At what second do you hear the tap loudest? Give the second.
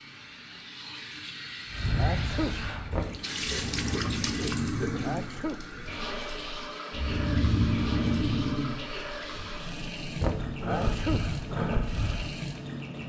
4 s.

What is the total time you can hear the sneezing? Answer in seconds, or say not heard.
2 s.